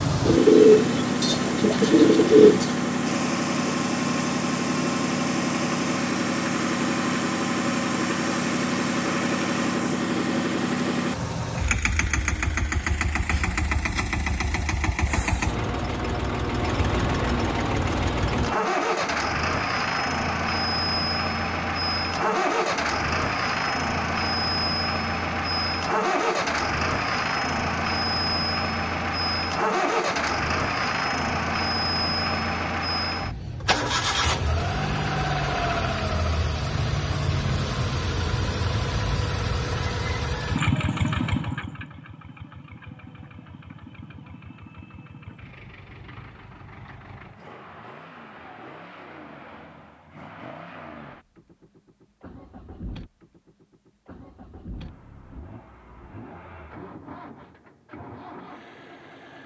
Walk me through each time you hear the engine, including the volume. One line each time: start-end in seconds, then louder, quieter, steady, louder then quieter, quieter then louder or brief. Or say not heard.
0.0-59.4 quieter.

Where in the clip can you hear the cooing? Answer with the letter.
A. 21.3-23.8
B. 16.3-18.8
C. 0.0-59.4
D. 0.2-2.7
D.